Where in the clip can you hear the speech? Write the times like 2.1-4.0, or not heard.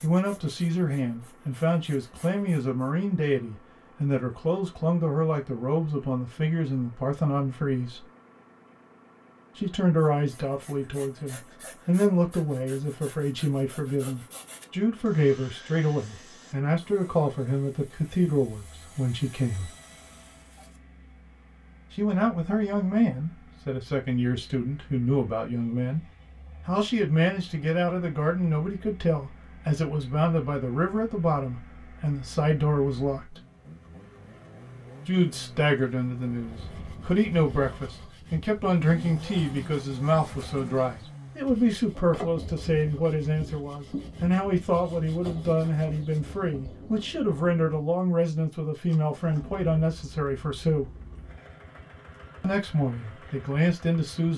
0.0-8.1, 9.6-19.7, 21.9-26.1, 26.6-33.4, 35.0-50.9, 52.4-54.3.